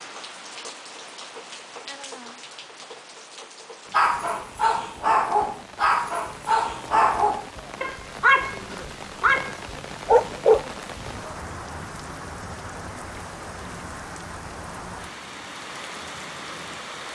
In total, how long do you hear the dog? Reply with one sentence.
The dog can be heard for 7 seconds in total.